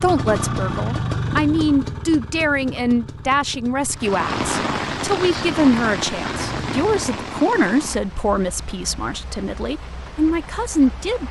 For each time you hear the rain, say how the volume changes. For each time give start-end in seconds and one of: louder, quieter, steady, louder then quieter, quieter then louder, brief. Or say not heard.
4.0-11.2 quieter.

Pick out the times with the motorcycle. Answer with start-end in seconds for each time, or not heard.
0.0-7.2.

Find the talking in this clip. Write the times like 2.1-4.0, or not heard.
0.0-11.2.